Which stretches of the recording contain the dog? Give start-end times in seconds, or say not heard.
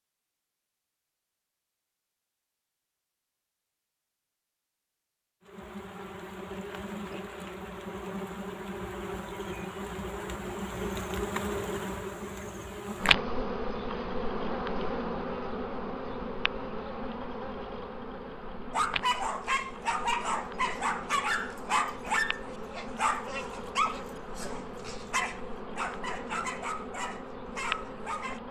18.7-28.4.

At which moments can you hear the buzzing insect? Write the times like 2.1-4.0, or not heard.
5.4-28.4.